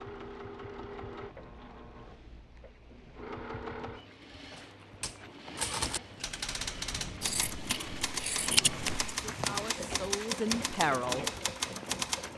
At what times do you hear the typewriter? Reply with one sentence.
The typewriter can be heard from 4.5 to 12.3 s.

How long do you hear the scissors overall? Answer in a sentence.
The scissors can be heard for 2 seconds in total.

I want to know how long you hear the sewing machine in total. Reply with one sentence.
You can hear the sewing machine for 12 seconds altogether.